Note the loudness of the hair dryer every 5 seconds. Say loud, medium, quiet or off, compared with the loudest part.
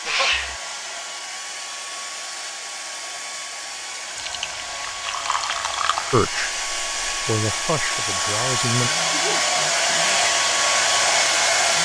quiet, medium, loud.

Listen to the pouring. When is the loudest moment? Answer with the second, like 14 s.
6 s.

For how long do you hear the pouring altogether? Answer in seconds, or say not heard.
2 s.